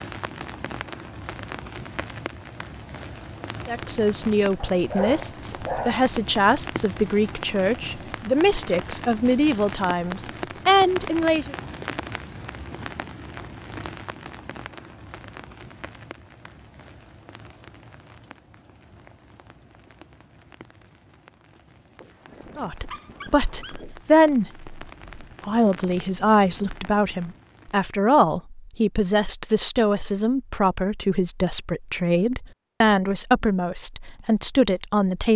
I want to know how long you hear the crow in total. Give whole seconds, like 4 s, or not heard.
not heard.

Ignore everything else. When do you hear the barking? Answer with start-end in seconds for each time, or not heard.
4.6-6.0, 22.0-24.0.